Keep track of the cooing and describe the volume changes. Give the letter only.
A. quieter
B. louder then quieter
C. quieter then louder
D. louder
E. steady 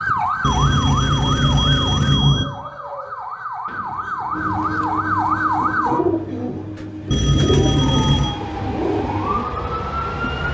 D.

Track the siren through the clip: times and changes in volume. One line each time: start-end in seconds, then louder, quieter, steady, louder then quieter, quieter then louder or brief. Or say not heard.
0.0-6.0 quieter then louder
7.5-10.4 brief.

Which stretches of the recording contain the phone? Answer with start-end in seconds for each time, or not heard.
0.4-2.5, 7.1-8.4.